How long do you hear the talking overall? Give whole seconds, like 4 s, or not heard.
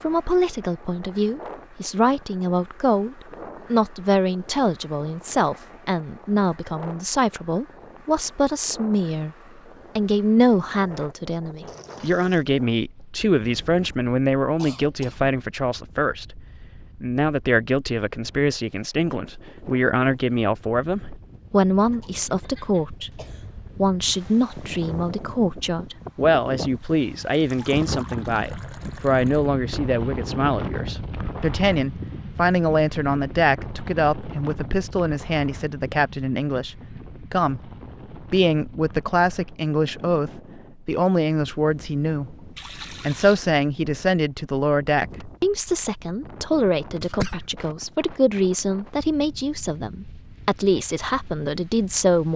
51 s.